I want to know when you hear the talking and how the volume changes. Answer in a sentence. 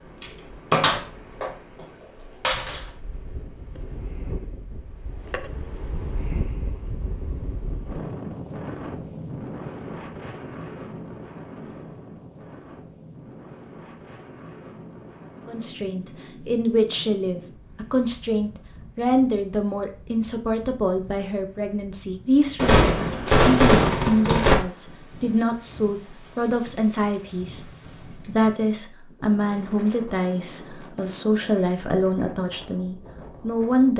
The talking can be heard from 15.4 to 33.9 s, at a steady volume.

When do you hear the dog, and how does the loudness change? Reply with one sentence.
The dog can't be heard in this clip.